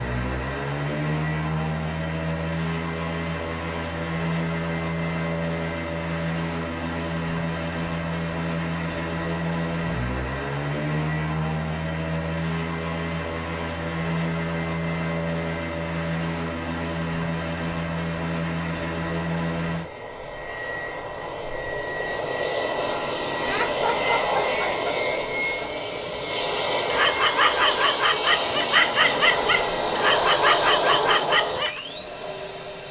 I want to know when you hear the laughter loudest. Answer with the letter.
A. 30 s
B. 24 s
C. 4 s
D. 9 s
B.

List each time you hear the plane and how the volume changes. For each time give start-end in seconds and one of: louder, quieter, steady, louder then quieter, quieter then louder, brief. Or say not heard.
0.0-32.8 steady.